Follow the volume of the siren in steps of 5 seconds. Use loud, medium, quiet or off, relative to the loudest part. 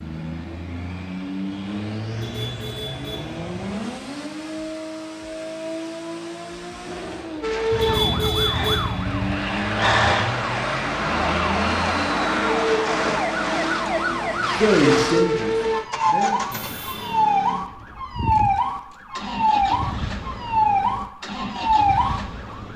off, loud, loud, loud, loud.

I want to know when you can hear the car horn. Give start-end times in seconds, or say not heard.
2.1-3.8, 7.7-9.3, 16.5-17.3.